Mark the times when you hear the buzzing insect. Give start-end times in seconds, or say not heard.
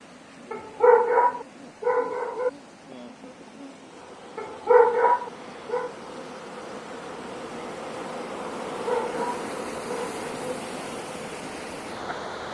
0.0-12.4.